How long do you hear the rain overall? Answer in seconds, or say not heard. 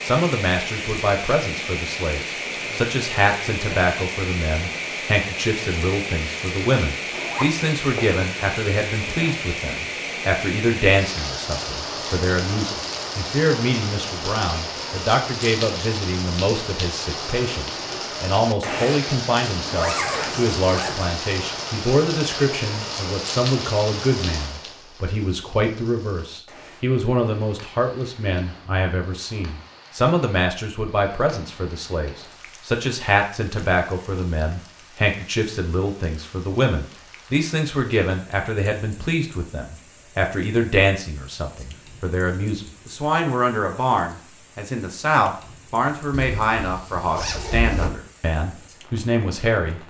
50 s.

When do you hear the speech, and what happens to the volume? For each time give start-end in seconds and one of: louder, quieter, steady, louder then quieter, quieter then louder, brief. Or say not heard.
0.0-49.8 steady.